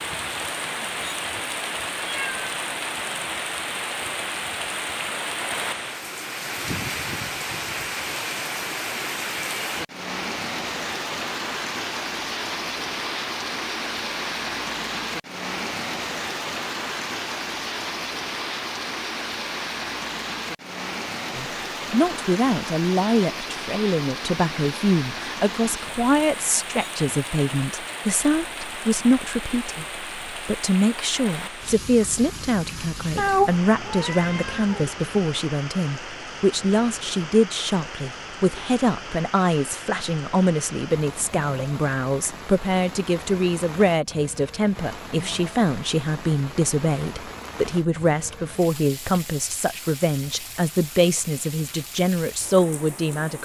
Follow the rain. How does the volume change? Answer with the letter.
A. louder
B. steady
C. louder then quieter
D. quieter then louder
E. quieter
E.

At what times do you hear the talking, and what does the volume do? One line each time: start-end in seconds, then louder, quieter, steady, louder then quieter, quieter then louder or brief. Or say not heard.
21.4-53.4 steady.